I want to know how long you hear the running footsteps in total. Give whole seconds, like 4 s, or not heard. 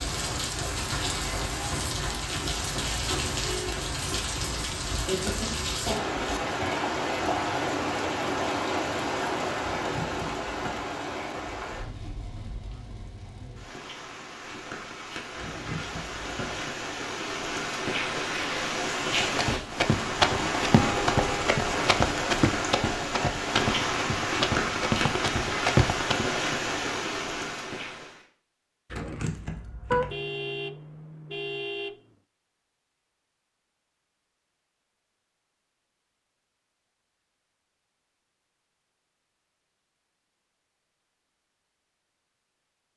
7 s.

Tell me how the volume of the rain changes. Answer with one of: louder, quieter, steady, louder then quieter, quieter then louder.
quieter then louder.